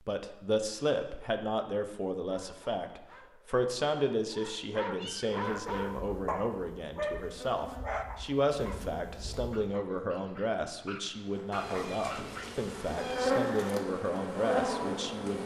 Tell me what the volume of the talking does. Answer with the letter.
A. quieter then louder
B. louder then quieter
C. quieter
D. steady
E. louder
D.